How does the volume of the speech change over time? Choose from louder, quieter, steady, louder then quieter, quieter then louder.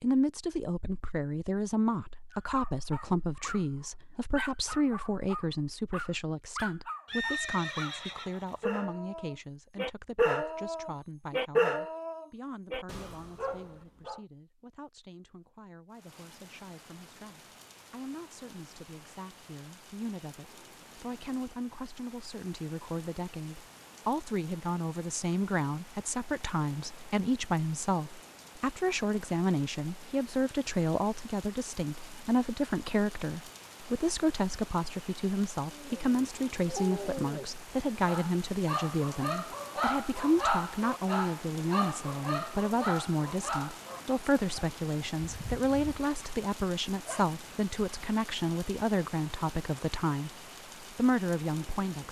quieter then louder.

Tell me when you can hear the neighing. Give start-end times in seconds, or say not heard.
7.0-8.7.